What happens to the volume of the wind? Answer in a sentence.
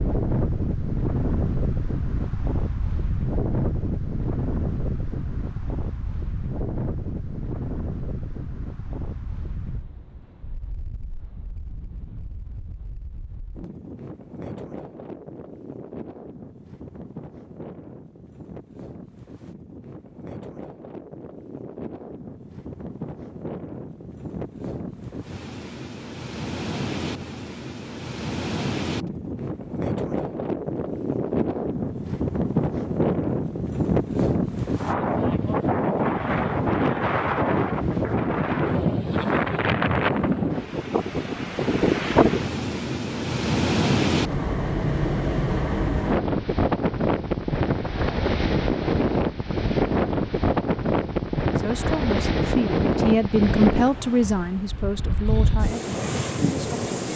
The loudness of the wind goes down, then up.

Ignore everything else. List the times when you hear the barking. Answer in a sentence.
The barking can't be heard in this clip.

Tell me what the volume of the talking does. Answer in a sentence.
The loudness of the talking goes up, then down.